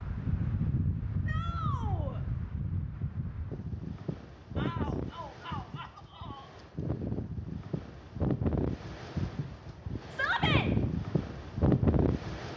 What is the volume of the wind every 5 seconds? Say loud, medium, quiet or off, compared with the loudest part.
medium, medium, loud.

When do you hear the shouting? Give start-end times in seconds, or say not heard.
1.2-2.2, 4.5-6.5, 10.1-10.7.